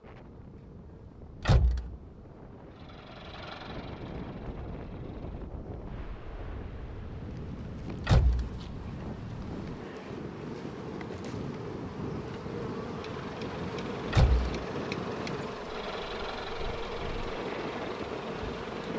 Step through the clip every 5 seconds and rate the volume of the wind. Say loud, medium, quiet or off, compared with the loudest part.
medium, loud, loud, loud.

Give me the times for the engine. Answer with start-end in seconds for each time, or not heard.
2.7-5.5, 12.9-18.9.